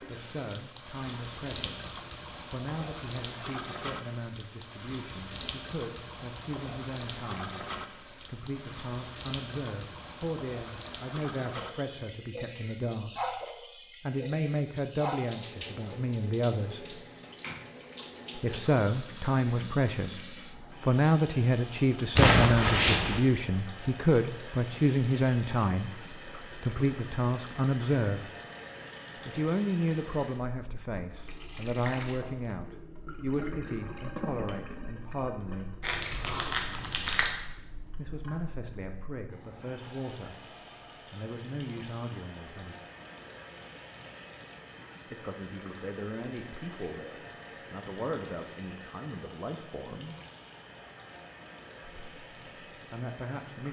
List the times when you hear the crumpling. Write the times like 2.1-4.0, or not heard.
22.1-23.2, 35.8-37.4.